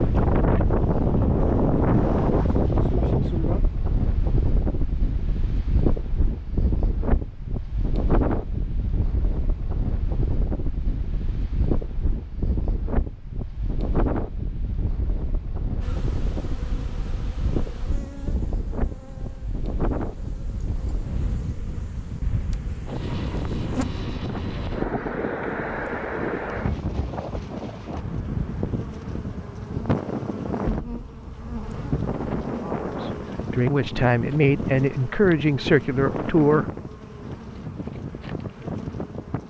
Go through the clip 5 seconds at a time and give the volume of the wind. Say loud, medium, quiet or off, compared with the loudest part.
loud, medium, medium, medium, medium, medium, medium, medium.